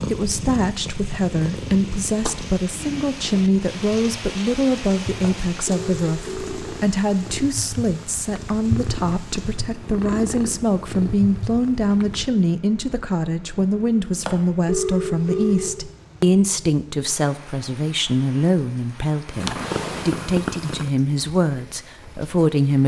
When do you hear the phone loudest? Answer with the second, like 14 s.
15 s.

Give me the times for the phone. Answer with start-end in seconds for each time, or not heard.
5.2-6.7, 14.2-15.7.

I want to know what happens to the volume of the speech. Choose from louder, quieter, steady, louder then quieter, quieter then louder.
steady.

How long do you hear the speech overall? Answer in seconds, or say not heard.
23 s.